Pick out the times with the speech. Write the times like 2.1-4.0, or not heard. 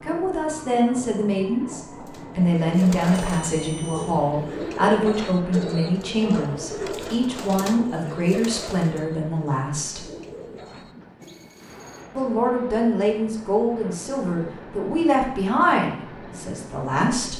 0.0-10.1, 12.2-17.3.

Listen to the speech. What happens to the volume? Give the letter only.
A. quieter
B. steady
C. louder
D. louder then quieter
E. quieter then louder
B.